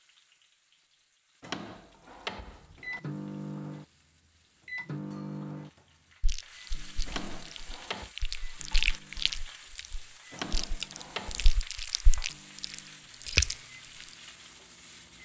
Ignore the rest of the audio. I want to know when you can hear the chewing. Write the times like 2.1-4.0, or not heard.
6.2-14.2.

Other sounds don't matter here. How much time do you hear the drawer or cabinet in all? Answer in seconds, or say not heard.
4 s.